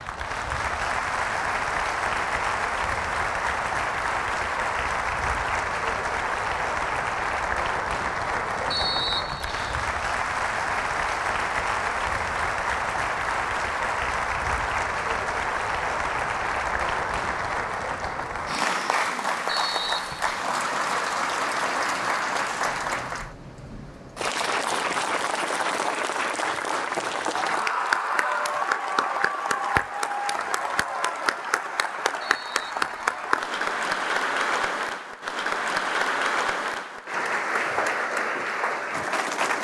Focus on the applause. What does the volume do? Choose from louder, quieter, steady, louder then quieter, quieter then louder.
steady.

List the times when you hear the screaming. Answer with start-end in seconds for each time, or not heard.
27.4-28.6.